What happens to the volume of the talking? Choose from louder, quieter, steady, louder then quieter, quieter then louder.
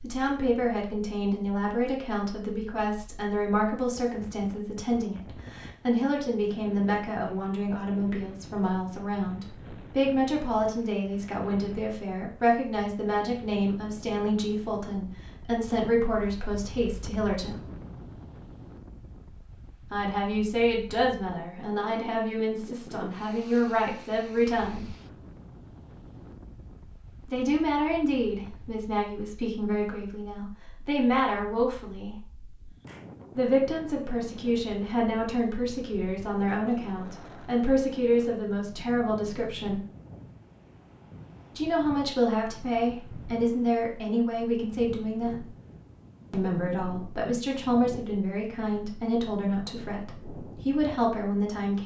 steady.